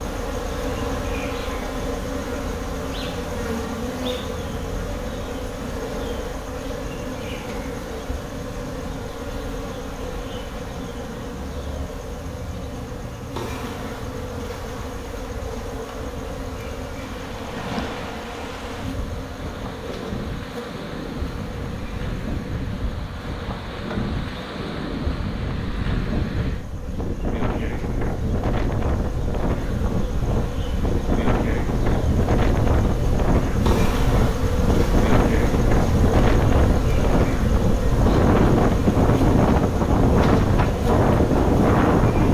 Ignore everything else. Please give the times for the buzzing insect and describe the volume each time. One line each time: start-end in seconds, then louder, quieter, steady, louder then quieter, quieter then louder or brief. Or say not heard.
0.0-42.3 quieter then louder.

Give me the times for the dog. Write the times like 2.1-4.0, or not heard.
not heard.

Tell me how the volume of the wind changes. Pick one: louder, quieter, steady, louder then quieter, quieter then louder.
louder.